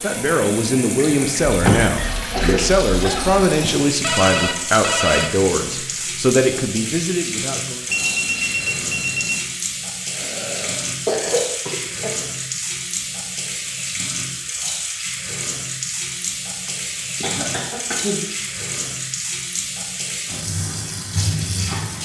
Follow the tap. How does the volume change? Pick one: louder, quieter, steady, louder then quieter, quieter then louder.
steady.